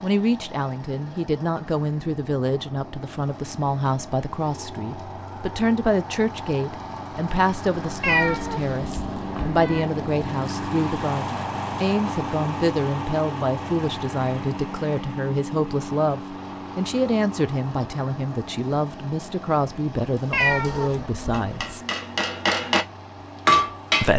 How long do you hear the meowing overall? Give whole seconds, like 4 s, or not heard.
3 s.